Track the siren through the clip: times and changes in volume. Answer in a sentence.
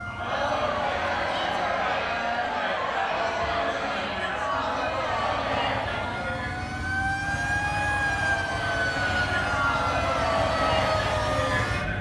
You can hear the siren from 0.0 to 11.9 s, getting louder.